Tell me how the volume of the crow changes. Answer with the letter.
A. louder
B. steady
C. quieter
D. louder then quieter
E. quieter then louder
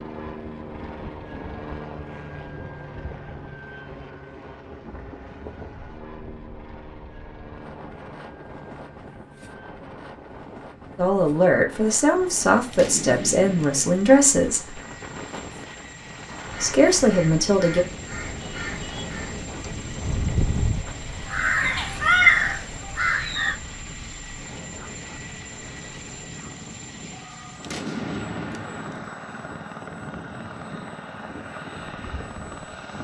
A.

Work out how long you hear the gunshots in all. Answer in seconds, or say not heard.
3 s.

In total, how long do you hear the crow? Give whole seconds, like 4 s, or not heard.
7 s.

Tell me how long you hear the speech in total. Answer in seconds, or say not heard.
5 s.